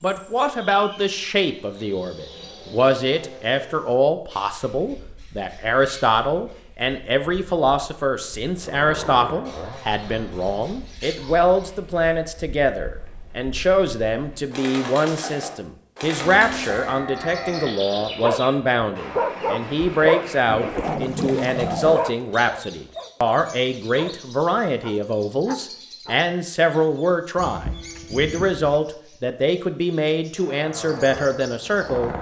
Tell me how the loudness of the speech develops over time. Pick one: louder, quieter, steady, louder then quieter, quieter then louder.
steady.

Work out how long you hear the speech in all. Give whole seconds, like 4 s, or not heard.
32 s.